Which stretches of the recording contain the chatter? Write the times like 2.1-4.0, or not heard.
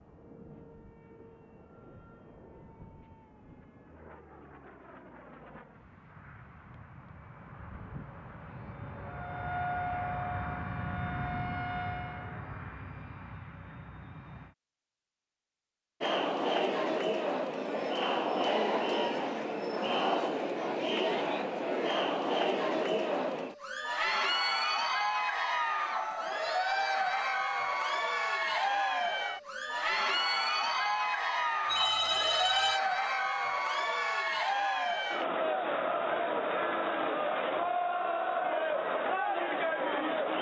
16.0-40.3.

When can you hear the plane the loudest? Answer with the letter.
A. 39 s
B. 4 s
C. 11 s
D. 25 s
C.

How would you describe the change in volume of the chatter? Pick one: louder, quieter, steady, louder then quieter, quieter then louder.
steady.